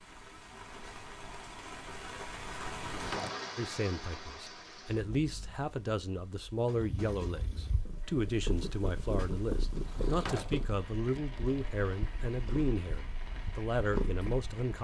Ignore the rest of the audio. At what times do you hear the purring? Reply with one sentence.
You can hear the purring from 6.8 to 14.4 s.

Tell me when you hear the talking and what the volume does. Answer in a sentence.
You can hear the talking from 3.5 to 14.7 s, at a steady volume.